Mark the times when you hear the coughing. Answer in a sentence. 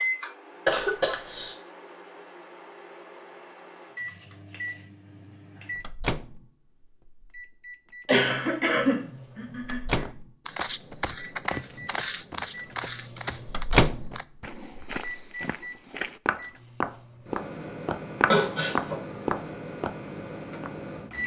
The coughing can be heard from 0.7 to 1.6 s, from 8.1 to 10.1 s and from 18.2 to 19.0 s.